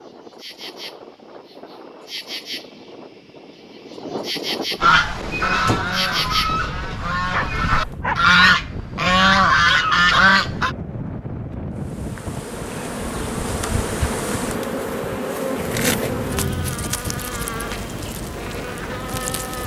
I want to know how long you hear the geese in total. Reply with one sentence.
You can hear the geese for 6 seconds altogether.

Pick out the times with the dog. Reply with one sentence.
The dog can be heard from 7.2 to 8.6 s.